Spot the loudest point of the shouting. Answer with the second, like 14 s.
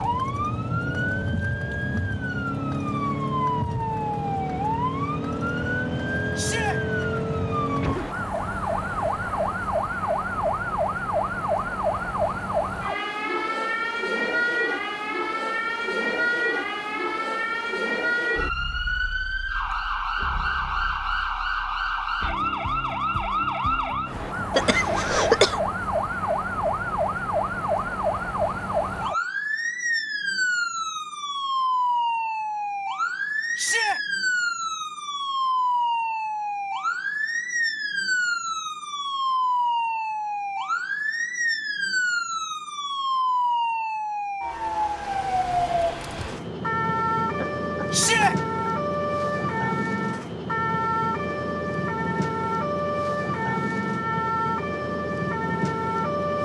48 s.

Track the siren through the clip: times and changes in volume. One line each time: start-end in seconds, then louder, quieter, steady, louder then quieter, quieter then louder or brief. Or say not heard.
0.0-56.3 steady.